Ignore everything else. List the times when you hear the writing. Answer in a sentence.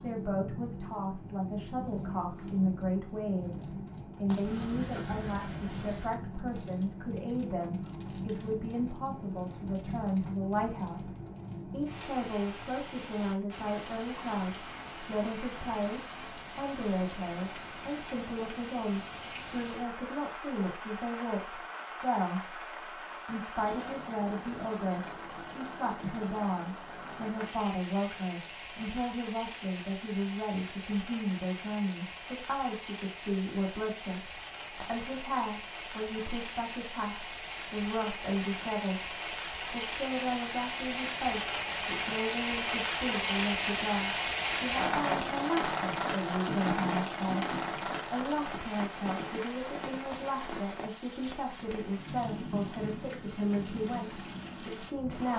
You can hear the writing from 4.4 to 6.2 s and from 46.5 to 47.8 s.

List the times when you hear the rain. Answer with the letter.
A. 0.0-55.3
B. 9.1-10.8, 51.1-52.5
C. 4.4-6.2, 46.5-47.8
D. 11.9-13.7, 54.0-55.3
A.